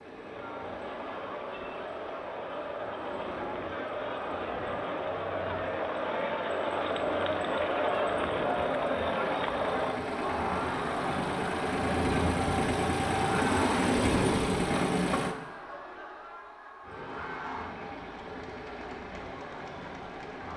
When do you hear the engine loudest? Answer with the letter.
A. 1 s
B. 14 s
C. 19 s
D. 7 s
B.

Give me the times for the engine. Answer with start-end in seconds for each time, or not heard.
0.0-15.3, 16.8-20.5.